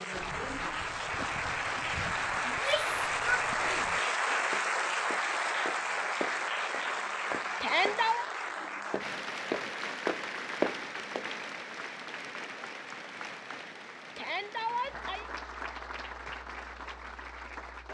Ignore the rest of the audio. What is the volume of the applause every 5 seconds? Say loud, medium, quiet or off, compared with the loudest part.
loud, loud, medium, medium.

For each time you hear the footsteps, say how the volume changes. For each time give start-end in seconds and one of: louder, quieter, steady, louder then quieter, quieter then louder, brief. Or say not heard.
0.1-11.3 louder.